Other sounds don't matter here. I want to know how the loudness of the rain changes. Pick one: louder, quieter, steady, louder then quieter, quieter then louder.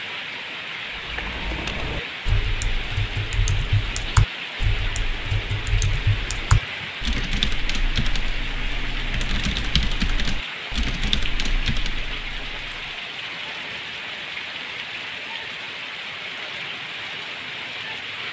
steady.